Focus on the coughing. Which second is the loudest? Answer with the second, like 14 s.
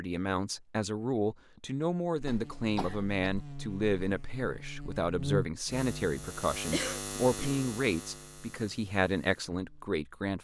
7 s.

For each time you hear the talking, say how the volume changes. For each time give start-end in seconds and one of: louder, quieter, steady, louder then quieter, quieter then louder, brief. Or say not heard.
0.0-10.3 steady.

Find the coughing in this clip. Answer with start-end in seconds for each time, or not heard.
2.2-3.3, 6.7-7.6.